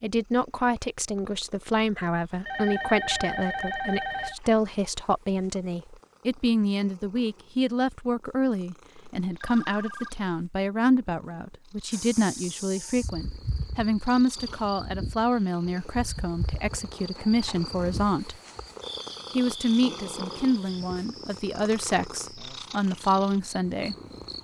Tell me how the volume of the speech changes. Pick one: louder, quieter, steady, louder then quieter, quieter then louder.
steady.